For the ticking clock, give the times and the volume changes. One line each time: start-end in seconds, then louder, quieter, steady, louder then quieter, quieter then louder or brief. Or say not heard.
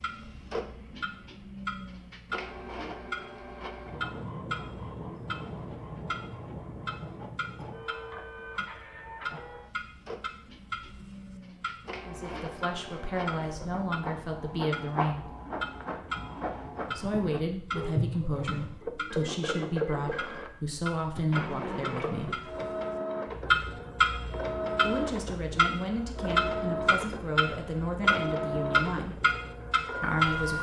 0.0-30.5 louder.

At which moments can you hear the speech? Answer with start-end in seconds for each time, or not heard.
12.1-15.3, 16.9-22.4, 24.8-29.1, 30.0-30.5.